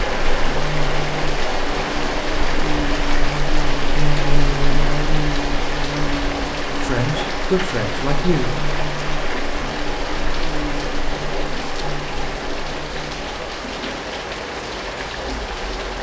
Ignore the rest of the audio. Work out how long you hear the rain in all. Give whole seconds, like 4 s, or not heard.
16 s.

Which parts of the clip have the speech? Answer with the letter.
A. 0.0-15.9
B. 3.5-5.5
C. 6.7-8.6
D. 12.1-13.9
C.